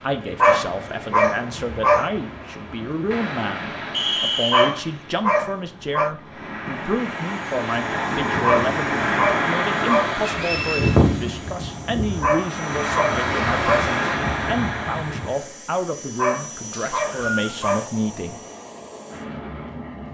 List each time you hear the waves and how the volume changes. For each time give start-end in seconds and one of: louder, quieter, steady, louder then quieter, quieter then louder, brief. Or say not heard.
0.0-15.6 louder.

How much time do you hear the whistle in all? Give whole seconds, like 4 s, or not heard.
2 s.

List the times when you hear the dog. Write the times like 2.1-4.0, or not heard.
0.4-2.1, 4.5-6.1, 8.4-10.2, 12.2-13.9, 16.1-17.9.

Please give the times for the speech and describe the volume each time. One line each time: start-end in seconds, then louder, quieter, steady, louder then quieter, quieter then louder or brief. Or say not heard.
0.0-18.4 steady.